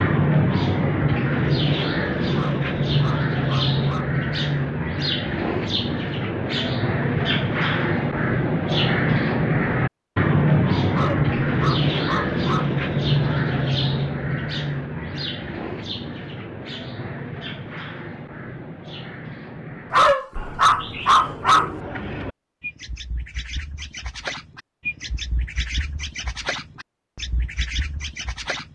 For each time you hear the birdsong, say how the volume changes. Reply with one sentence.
You can hear the birdsong from 0.0 to 28.6 s, getting quieter.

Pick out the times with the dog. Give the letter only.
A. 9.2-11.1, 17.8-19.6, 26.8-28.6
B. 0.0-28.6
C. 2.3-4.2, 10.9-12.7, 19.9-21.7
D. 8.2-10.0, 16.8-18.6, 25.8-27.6
C.